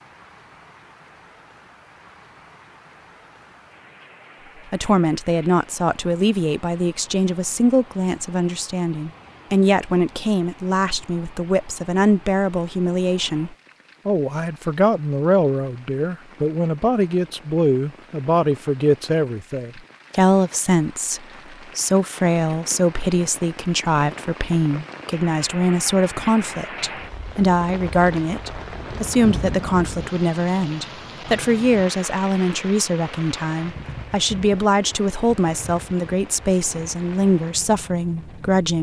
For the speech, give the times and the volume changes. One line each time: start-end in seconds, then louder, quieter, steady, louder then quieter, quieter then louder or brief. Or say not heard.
4.7-38.7 steady.